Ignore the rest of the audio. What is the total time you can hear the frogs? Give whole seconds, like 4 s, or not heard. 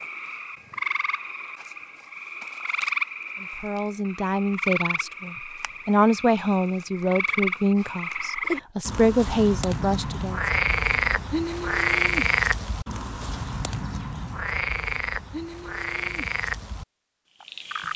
18 s.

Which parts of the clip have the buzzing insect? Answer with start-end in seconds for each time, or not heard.
not heard.